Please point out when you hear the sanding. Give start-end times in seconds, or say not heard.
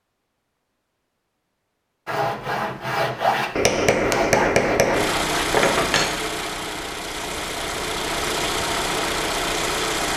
2.0-6.0.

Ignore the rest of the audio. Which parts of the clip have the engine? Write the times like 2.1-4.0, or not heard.
4.9-10.1.